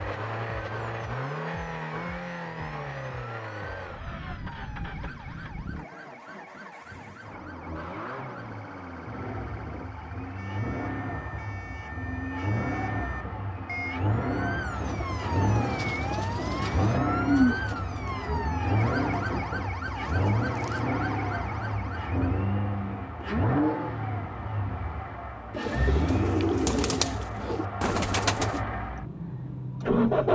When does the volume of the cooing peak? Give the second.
17 s.